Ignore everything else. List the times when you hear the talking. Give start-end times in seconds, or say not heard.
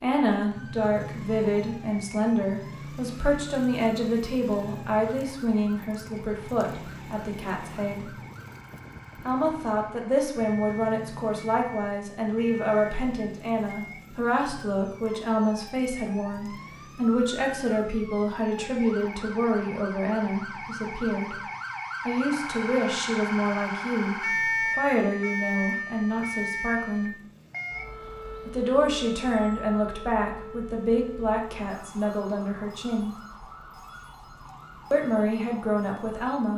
0.0-8.1, 9.2-21.4, 22.1-27.1, 28.4-33.1, 34.9-36.5.